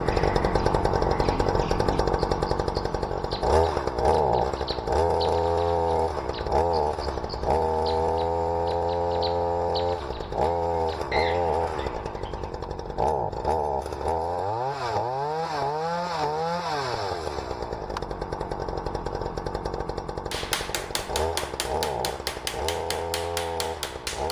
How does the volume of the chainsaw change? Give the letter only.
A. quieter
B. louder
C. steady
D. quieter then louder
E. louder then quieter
A.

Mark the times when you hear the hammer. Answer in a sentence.
The hammer can be heard from 20.3 to 24.2 s.